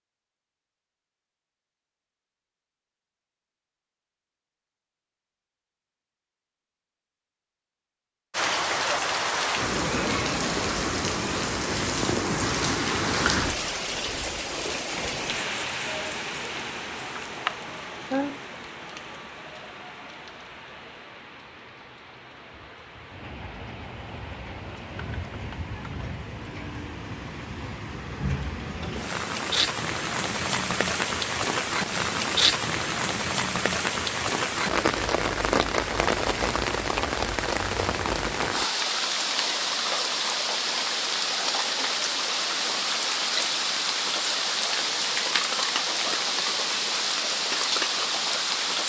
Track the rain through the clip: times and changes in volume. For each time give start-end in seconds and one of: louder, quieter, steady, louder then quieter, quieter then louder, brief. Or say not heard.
8.3-48.8 quieter then louder.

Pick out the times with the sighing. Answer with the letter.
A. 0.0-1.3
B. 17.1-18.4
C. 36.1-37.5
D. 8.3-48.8
B.